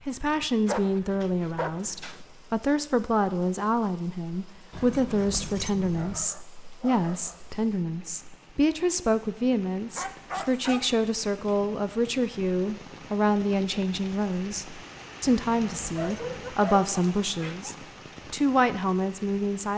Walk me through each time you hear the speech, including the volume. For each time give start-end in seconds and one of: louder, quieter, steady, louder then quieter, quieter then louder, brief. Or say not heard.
0.1-19.7 steady.